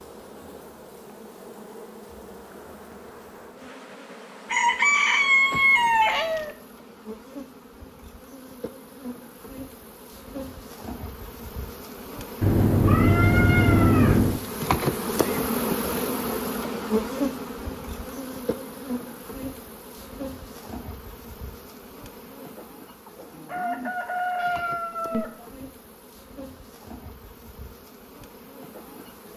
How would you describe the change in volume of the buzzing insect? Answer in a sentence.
The volume of the buzzing insect goes up, then down.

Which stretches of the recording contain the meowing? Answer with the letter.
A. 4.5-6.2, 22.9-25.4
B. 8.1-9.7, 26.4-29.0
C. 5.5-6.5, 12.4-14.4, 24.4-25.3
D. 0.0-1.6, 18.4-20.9
C.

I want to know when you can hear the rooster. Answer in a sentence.
The rooster can be heard from 4.5 to 6.2 s and from 22.9 to 25.4 s.